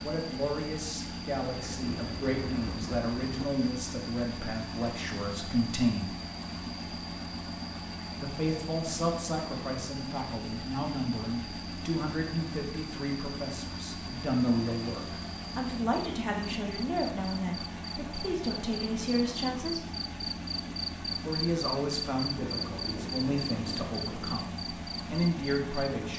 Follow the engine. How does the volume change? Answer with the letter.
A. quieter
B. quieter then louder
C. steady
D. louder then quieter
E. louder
C.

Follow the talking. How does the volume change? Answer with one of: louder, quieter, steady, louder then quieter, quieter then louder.
steady.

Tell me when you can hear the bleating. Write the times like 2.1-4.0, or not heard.
not heard.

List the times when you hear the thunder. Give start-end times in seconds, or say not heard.
1.4-3.5, 22.4-24.4.